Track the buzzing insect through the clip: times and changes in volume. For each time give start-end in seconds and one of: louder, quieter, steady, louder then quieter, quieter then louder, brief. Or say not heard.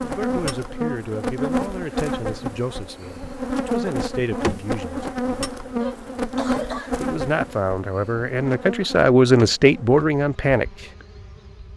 0.0-11.7 quieter.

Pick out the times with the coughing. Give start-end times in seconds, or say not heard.
5.8-7.0.